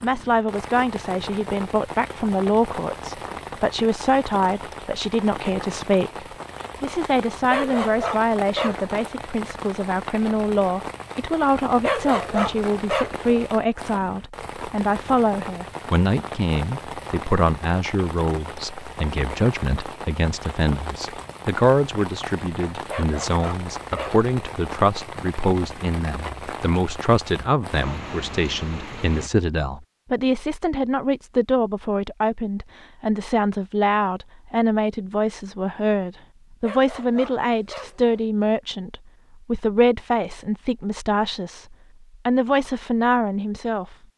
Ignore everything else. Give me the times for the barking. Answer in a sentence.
The barking can be heard from 7.5 to 8.9 s, from 11.8 to 13.4 s, from 22.9 to 24.2 s and from 36.6 to 38.2 s.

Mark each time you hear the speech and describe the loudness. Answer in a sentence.
You can hear the speech from 0.0 to 44.0 s, at a steady volume.